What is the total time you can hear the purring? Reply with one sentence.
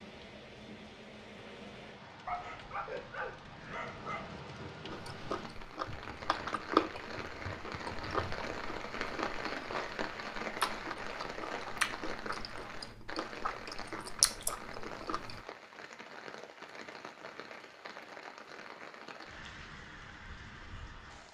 The purring can't be heard in this clip.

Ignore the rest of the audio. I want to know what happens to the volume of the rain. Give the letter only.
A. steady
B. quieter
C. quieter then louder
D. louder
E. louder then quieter
E.